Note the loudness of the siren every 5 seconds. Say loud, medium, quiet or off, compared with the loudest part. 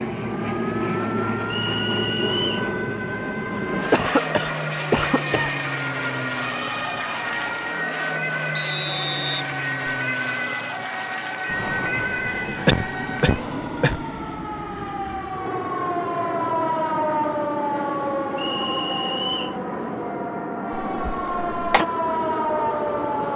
medium, loud, loud, loud, loud.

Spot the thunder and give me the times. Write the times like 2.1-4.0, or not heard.
not heard.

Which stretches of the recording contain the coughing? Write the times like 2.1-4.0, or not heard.
3.9-5.5, 12.7-14.0, 20.8-21.9.